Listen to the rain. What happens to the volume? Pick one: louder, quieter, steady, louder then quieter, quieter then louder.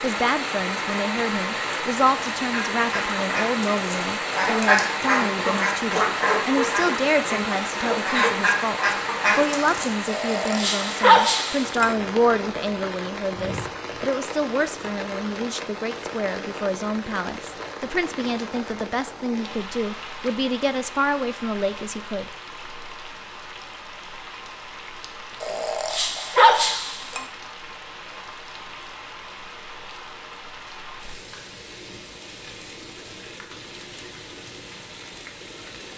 quieter.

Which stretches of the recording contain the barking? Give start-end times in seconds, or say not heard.
10.1-11.9, 25.4-27.2.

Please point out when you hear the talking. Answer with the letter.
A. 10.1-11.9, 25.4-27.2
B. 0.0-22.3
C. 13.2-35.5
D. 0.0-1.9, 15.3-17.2
B.